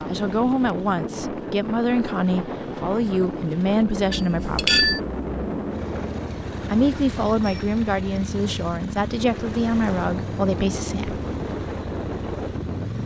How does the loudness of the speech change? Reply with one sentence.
The loudness of the speech stays about the same.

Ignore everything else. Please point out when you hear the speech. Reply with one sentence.
You can hear the speech from 0.1 to 4.8 s and from 6.7 to 11.2 s.